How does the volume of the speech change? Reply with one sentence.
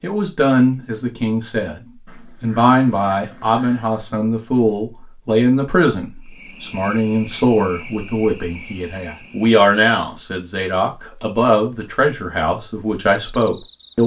The volume of the speech stays about the same.